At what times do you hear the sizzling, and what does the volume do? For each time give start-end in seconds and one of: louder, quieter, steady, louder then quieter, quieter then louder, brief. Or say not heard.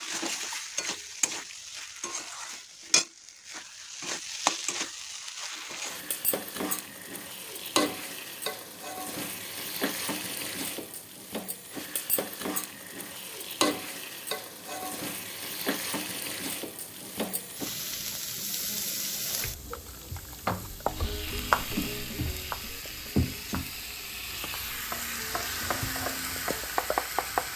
0.0-27.5 steady.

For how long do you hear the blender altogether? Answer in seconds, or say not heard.
not heard.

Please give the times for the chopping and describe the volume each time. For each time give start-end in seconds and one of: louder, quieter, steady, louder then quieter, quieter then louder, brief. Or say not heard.
20.4-27.5 quieter then louder.